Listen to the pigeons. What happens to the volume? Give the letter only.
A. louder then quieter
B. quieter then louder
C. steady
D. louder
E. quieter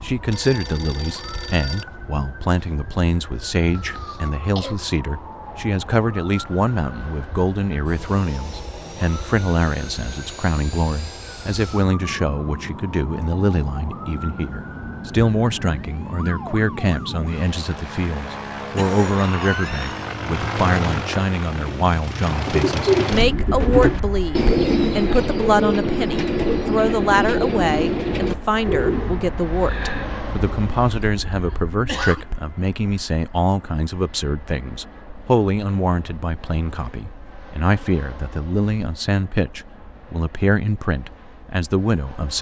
E.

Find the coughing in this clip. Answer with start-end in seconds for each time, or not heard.
3.8-4.8, 18.8-20.2, 31.0-32.2.